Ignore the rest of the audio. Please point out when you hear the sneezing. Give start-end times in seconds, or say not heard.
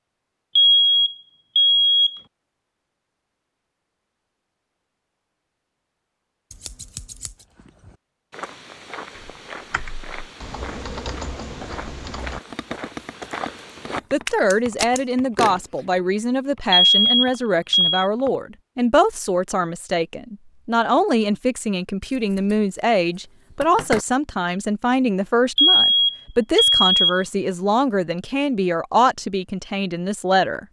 not heard.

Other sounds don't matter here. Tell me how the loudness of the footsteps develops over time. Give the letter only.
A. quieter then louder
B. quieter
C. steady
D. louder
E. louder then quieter
D.